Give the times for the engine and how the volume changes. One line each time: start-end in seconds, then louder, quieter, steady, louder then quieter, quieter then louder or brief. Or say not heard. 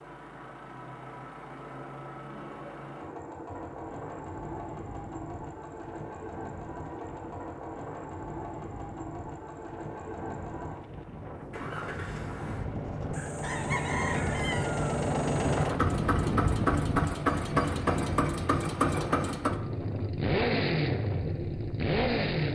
0.0-22.5 louder.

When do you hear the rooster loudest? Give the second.
14 s.